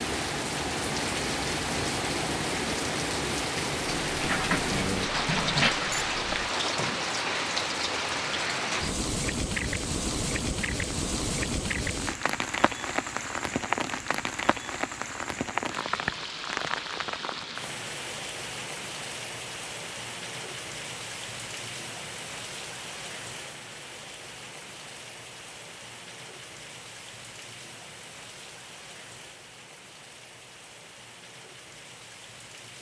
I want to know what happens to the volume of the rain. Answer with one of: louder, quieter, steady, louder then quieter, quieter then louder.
quieter.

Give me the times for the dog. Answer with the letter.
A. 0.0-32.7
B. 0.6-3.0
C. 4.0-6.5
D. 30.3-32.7
C.